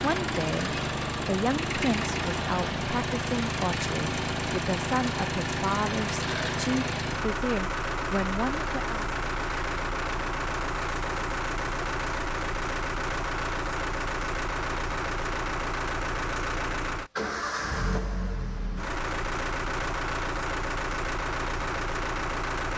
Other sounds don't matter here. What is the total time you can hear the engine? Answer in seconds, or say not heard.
23 s.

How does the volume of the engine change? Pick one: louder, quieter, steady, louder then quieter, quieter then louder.
steady.